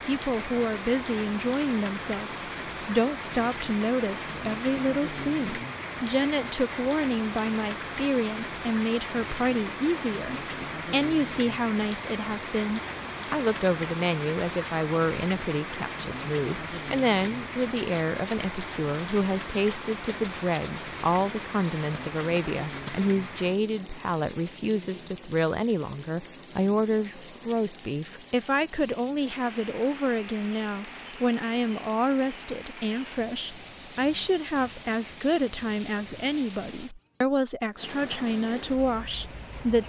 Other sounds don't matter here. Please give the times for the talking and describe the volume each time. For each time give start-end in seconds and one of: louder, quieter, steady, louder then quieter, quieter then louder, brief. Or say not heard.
0.0-39.8 steady.